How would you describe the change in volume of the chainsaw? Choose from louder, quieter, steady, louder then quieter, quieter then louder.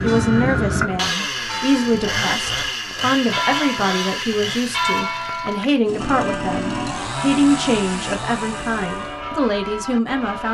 quieter.